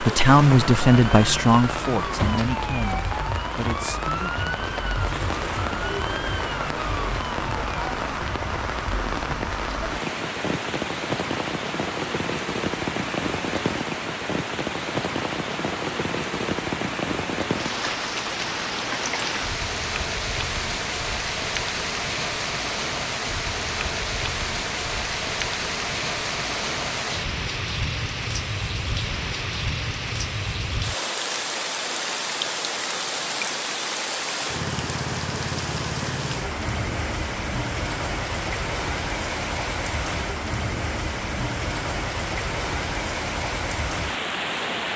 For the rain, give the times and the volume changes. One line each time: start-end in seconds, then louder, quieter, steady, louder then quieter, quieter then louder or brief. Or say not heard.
0.0-44.9 steady.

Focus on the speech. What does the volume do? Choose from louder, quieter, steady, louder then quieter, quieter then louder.
quieter.